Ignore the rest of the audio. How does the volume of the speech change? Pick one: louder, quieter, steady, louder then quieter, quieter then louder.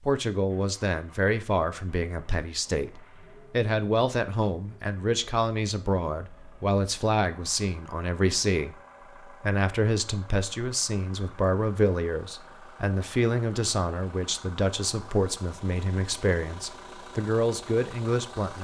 steady.